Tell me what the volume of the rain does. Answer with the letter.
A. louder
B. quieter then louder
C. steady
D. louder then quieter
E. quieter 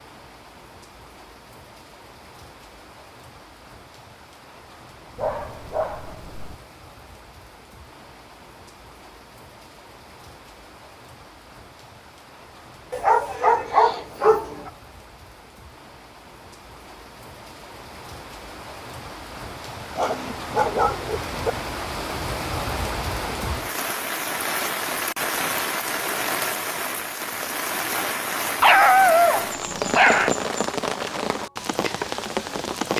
A.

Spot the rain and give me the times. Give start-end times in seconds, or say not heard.
0.0-32.9.